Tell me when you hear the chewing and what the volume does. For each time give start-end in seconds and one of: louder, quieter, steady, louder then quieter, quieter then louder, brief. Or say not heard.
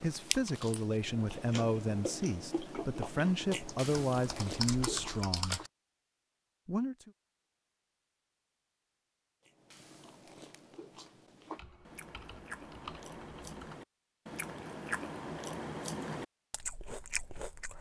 0.0-5.7 louder
9.4-17.7 louder.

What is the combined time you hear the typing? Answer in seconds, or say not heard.
4 s.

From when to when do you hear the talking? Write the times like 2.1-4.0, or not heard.
0.0-5.6, 6.7-7.1.